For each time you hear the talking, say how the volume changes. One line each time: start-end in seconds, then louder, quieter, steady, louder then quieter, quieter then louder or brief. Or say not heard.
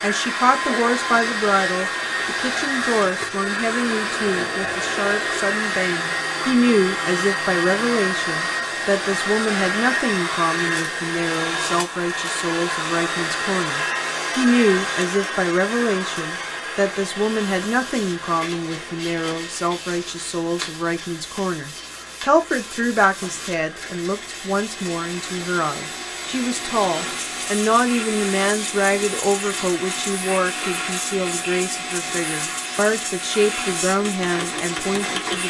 0.0-35.4 steady.